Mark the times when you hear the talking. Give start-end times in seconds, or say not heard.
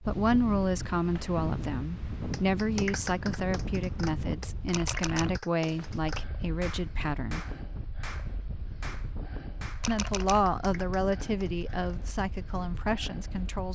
0.0-7.5, 9.8-13.7.